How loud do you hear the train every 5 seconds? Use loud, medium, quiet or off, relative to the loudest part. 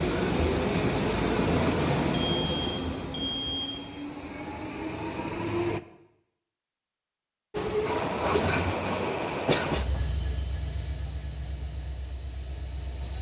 loud, loud, quiet.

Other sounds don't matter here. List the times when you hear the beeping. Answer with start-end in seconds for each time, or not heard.
2.1-3.8.